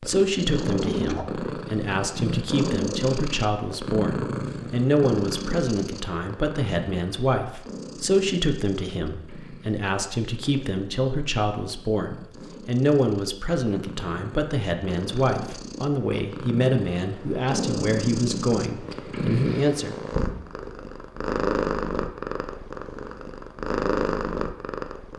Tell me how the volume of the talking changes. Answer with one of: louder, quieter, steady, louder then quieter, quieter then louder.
steady.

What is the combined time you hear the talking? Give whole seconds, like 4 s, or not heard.
20 s.